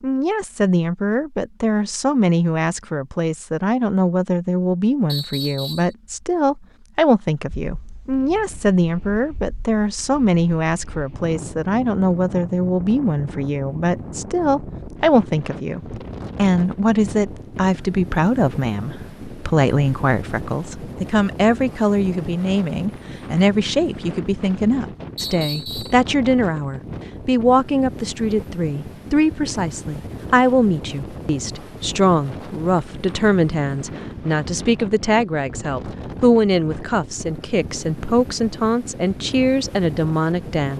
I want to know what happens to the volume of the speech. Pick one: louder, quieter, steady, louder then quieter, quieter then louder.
steady.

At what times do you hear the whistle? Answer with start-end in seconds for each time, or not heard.
5.0-6.0, 25.1-26.0.